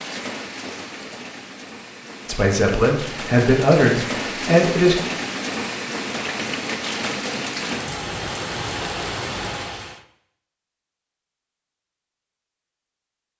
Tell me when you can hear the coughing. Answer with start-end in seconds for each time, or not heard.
not heard.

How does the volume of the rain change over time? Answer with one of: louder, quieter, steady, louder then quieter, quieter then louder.
louder.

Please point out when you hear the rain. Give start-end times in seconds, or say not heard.
0.0-10.0.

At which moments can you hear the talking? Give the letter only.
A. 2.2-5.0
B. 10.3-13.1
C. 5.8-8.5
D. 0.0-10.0
A.